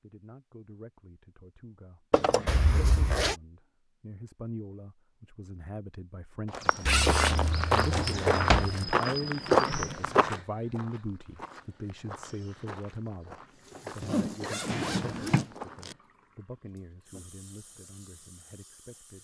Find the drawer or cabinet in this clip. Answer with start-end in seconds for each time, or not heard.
2.1-2.6, 7.1-8.8, 14.7-15.4.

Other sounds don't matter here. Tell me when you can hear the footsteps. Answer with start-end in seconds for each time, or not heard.
6.5-16.0.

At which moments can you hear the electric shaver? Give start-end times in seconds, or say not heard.
not heard.